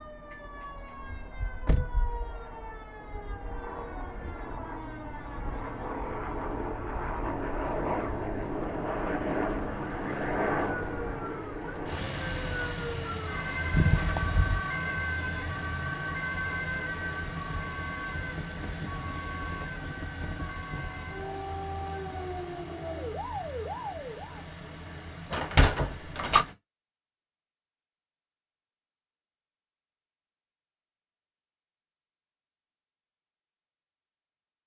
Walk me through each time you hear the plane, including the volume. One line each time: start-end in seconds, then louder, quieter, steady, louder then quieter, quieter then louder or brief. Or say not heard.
0.0-26.6 louder then quieter.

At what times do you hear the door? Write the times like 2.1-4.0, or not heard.
1.3-2.8, 13.7-14.6, 25.3-26.4.